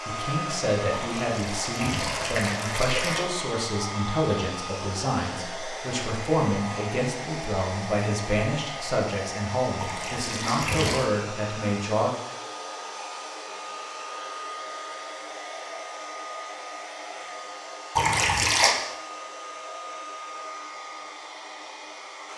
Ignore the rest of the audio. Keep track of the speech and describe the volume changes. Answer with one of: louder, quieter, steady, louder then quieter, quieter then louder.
steady.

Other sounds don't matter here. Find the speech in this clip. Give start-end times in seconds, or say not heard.
0.1-12.1.